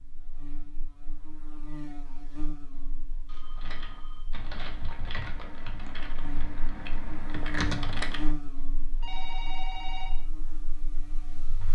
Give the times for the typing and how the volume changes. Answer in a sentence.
The typing can be heard from 3.5 to 8.3 s, getting louder.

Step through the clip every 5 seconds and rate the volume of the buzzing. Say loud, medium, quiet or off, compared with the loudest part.
medium, loud, medium.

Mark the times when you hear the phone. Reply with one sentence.
You can hear the phone from 3.2 to 4.3 s and from 8.9 to 10.2 s.